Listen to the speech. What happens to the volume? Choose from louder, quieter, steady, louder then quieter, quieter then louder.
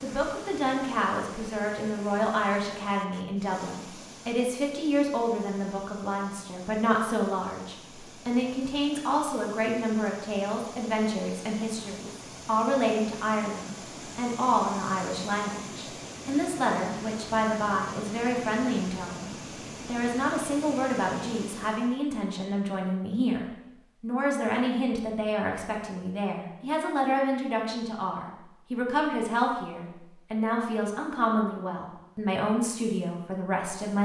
steady.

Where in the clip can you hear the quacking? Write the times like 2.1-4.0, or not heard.
not heard.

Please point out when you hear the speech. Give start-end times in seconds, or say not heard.
0.0-34.0.